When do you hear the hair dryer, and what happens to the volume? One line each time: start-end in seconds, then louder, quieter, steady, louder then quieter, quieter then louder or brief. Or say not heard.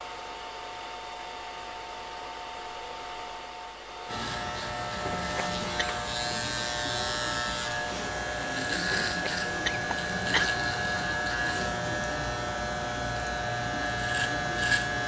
0.0-15.0 steady.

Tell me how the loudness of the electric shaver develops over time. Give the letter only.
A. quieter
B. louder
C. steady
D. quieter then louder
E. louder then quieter
C.